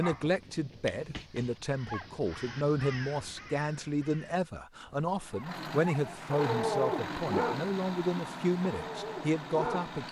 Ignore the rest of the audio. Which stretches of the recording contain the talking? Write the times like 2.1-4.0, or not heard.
0.0-10.0.